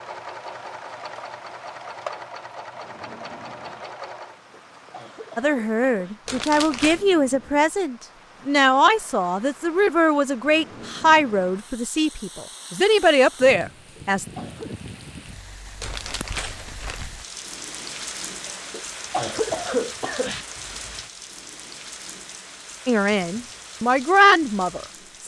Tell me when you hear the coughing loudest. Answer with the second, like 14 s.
20 s.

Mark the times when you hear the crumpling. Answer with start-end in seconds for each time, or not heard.
6.2-7.0, 15.8-17.1.